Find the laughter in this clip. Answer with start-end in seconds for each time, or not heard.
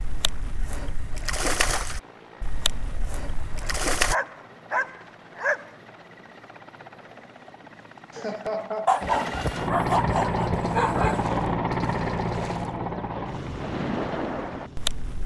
8.1-9.1.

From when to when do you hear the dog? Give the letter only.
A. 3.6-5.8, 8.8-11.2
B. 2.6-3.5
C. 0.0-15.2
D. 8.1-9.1
A.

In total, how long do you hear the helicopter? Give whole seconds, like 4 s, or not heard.
15 s.